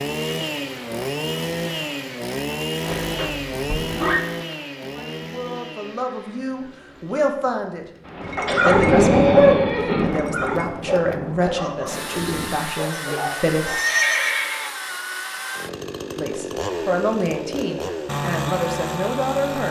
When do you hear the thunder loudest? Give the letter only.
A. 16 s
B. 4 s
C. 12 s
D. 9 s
D.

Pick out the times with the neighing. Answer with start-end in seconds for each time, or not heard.
2.9-4.2, 8.4-10.2, 13.7-14.7.